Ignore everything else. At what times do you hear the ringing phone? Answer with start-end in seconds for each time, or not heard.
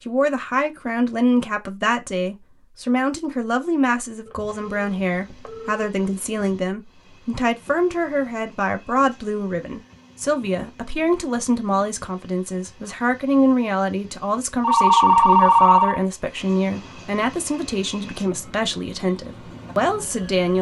4.2-6.0, 14.6-16.0.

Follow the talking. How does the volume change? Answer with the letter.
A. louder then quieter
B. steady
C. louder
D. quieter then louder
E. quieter
B.